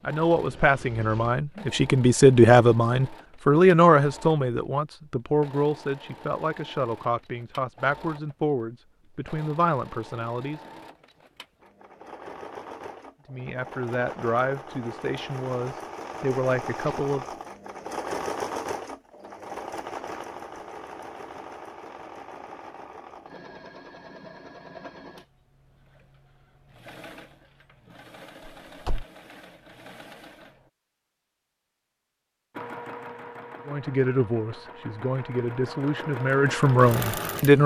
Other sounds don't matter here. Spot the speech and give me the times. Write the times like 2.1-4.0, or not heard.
0.1-10.6, 13.3-17.2, 33.6-37.6.